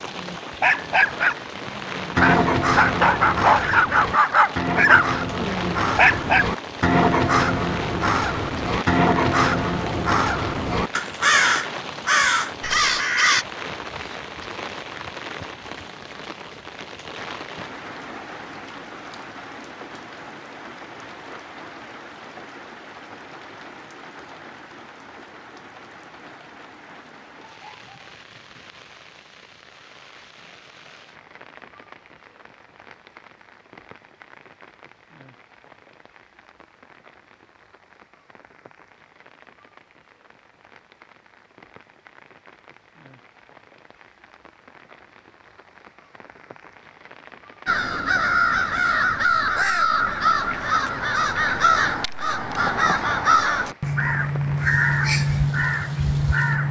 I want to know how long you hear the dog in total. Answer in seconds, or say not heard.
6 s.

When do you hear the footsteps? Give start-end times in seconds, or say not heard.
not heard.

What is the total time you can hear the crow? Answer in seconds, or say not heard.
20 s.